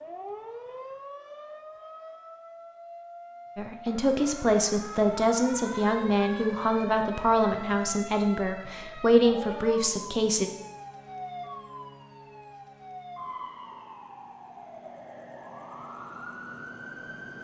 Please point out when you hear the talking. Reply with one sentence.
The talking can be heard from 3.5 to 10.5 s.